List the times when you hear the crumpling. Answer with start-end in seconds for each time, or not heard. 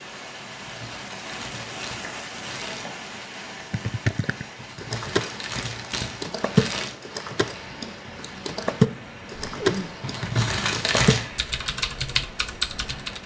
0.6-2.9, 4.5-7.0, 10.0-11.2.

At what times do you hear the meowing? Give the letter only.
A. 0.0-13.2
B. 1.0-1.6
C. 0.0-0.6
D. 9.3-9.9
D.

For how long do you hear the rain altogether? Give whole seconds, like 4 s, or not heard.
13 s.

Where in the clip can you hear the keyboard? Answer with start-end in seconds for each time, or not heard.
3.7-13.2.